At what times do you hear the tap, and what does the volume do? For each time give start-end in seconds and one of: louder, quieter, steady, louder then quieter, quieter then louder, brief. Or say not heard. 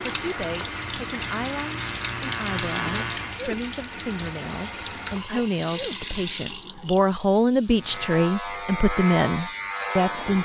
0.0-10.3 steady.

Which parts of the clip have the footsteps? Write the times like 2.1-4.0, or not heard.
not heard.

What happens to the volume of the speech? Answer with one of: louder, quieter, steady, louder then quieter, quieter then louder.
louder.